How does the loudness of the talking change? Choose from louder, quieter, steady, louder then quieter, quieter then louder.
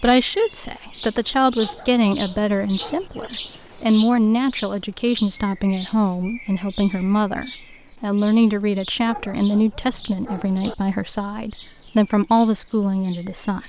steady.